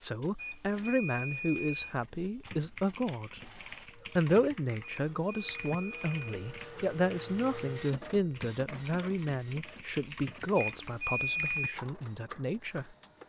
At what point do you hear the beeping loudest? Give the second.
11 s.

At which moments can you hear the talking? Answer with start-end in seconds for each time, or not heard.
0.0-3.5, 4.2-12.8.